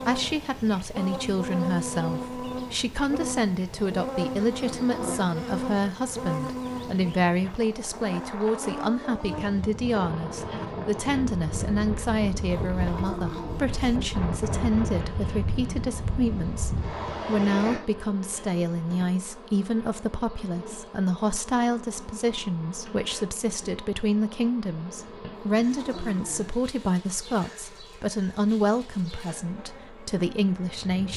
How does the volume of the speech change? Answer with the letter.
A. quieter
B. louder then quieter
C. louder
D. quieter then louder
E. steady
E.